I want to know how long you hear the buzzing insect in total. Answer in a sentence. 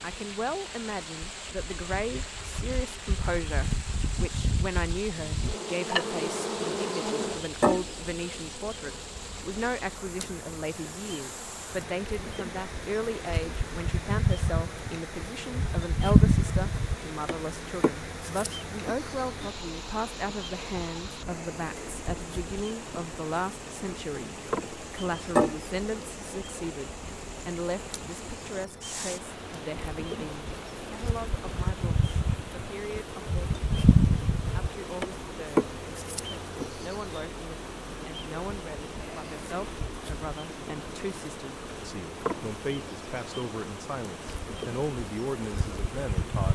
You can hear the buzzing insect for 46 seconds altogether.